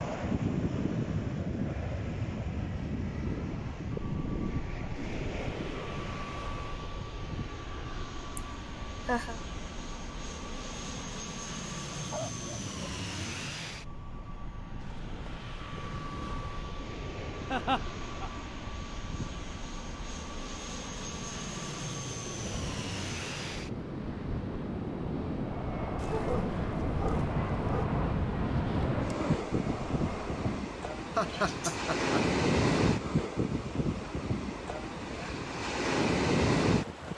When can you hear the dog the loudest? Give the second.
26 s.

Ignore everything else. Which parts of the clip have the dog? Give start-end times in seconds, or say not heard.
12.1-12.7, 25.9-27.9.